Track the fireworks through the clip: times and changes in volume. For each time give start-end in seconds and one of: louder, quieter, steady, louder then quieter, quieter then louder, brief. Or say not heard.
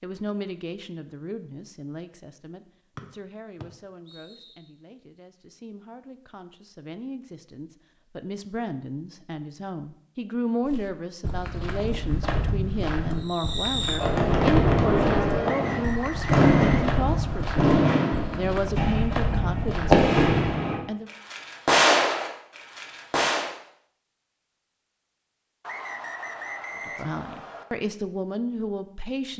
13.2-23.5 steady.